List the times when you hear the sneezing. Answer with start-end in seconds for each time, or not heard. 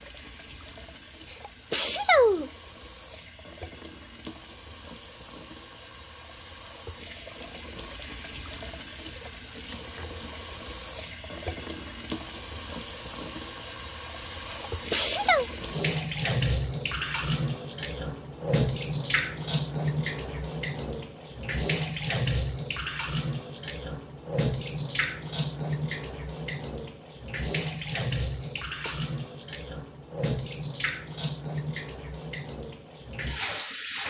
1.3-2.5, 14.5-15.4, 28.4-29.0.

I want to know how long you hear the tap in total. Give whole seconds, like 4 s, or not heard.
34 s.